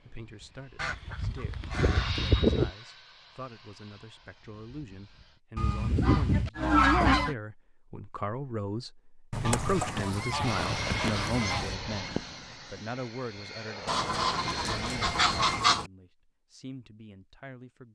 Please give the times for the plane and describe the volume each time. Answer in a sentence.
You can hear the plane from 0.0 to 5.4 s, getting louder then quieter; and from 10.4 to 15.7 s, getting quieter then louder.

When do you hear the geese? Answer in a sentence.
The geese can be heard from 0.8 to 2.7 s, from 5.5 to 7.3 s, from 9.3 to 11.8 s and from 13.8 to 15.9 s.